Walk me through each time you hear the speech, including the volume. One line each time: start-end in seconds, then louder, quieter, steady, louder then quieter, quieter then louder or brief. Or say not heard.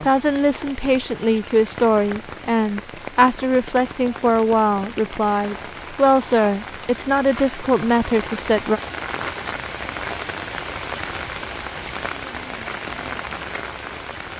0.0-8.8 steady.